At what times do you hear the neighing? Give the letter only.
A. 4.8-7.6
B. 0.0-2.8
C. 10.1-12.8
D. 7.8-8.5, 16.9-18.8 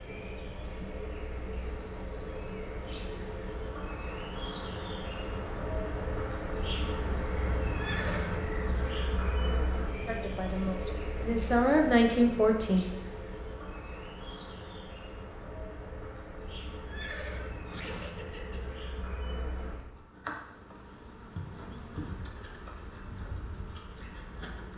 D.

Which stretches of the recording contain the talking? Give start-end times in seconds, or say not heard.
10.1-12.8.